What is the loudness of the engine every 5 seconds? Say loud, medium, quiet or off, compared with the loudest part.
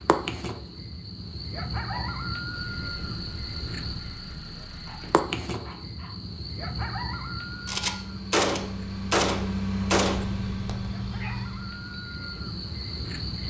quiet, loud, loud.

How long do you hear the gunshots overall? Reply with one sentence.
You can hear the gunshots for 3 seconds altogether.